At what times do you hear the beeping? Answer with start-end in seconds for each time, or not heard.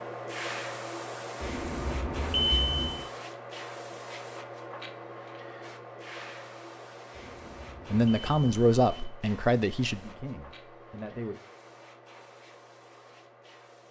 1.4-3.1, 7.1-9.1.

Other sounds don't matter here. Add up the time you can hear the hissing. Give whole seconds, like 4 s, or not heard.
14 s.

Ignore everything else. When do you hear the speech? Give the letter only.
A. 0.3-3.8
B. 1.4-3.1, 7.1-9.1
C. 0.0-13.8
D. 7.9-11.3
D.